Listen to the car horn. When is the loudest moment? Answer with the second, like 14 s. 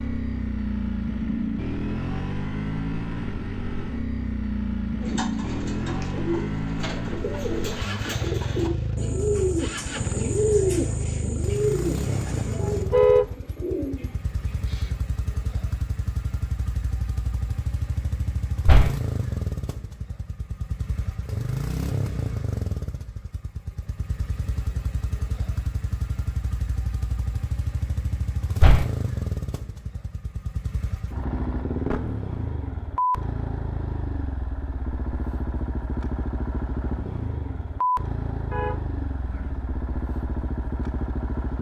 13 s.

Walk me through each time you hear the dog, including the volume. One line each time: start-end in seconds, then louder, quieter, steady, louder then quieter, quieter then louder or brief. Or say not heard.
not heard.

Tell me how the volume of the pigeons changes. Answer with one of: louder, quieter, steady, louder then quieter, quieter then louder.
louder then quieter.